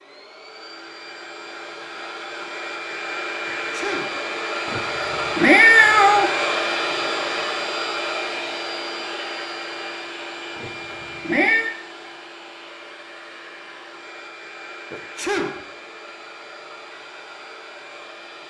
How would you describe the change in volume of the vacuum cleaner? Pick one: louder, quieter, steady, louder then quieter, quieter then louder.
louder then quieter.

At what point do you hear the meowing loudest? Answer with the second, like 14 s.
6 s.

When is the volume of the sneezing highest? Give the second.
15 s.